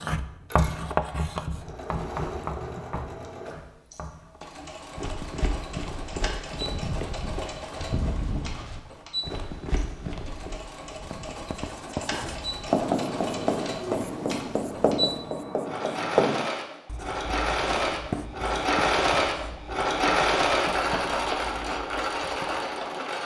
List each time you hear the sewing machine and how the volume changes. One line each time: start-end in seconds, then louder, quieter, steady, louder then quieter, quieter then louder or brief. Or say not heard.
0.1-23.2 louder.